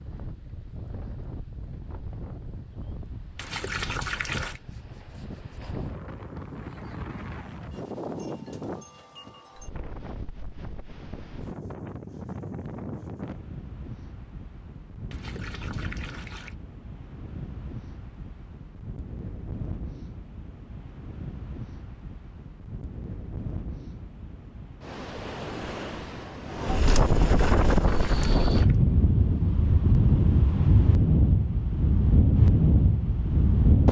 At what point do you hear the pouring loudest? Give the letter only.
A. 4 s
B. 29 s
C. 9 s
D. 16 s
A.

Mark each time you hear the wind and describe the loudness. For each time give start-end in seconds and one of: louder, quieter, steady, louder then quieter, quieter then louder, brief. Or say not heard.
0.0-33.8 louder.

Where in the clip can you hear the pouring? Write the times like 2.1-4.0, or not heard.
3.4-4.6, 15.1-16.6, 28.1-28.8.